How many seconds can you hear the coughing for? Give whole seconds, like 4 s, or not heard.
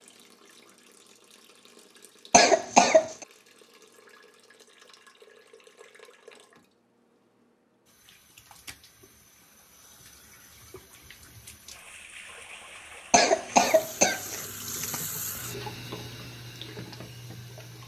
3 s.